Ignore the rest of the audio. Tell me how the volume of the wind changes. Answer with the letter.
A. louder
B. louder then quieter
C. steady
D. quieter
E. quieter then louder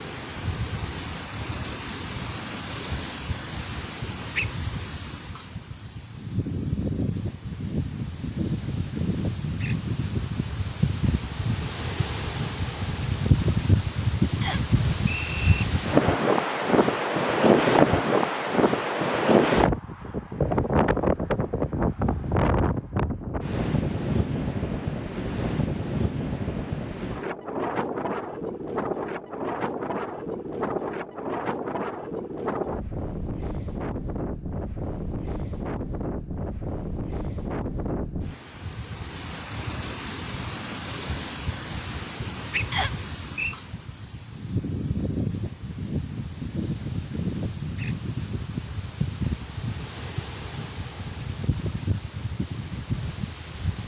B.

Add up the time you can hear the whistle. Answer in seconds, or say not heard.
2 s.